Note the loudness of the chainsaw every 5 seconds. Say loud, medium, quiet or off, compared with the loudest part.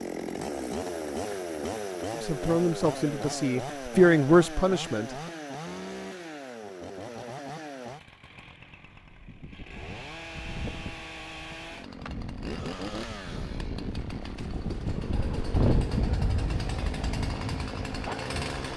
loud, medium, medium, loud.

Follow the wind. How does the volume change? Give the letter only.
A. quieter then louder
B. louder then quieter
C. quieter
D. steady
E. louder
B.